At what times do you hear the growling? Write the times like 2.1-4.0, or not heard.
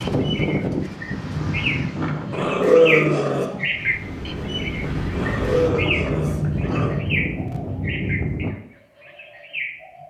2.3-3.5, 5.1-7.0.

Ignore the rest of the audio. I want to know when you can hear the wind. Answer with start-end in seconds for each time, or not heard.
0.0-8.5.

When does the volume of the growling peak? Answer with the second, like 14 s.
3 s.